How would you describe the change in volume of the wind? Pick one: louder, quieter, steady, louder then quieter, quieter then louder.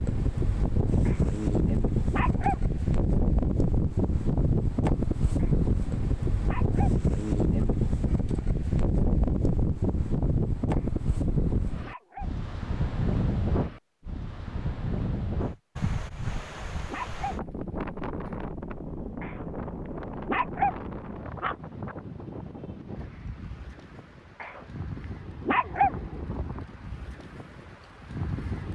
quieter.